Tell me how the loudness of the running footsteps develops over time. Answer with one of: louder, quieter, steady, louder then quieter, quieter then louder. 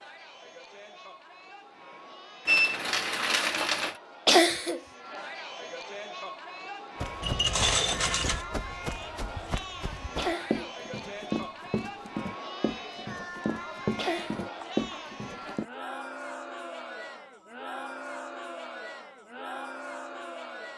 louder.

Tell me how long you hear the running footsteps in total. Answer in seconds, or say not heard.
9 s.